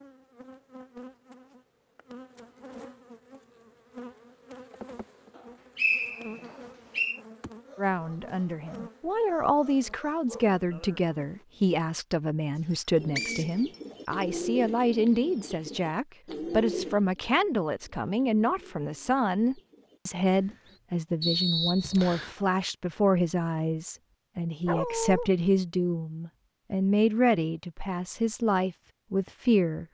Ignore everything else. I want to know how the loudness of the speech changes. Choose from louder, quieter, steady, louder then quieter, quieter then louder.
steady.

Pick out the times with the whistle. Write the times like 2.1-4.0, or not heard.
5.3-7.2, 12.7-14.2, 21.2-22.4.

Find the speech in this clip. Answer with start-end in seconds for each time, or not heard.
7.8-29.8.